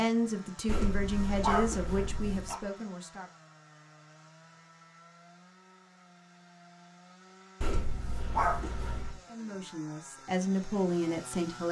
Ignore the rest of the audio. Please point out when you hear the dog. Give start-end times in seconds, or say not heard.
0.7-2.6, 7.6-9.2.